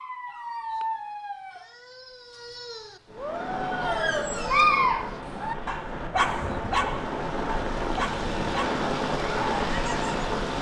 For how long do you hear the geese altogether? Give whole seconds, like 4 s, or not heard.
not heard.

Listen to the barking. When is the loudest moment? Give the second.
5 s.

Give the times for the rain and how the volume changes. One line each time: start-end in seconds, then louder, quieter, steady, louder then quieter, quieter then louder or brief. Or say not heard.
3.0-10.5 louder.